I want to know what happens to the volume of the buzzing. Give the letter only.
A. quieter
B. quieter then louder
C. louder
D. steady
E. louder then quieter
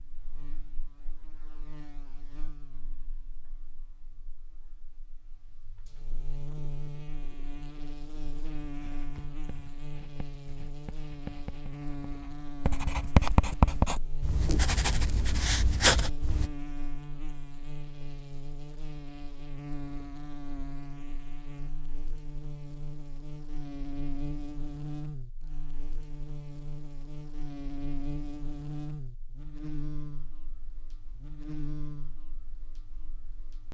C.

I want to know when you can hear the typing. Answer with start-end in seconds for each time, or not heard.
not heard.